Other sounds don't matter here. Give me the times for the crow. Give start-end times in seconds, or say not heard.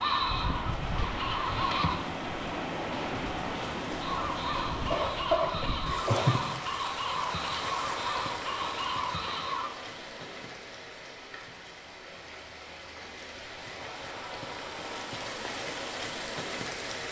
0.0-2.0, 4.0-9.7.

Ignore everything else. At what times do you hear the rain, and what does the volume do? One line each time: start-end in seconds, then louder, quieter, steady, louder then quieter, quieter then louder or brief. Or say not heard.
0.0-17.0 quieter then louder.